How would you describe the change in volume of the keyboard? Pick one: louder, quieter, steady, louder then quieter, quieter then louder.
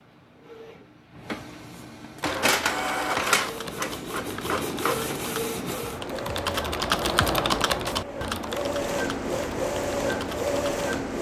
louder then quieter.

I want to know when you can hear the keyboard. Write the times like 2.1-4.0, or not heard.
2.2-10.9.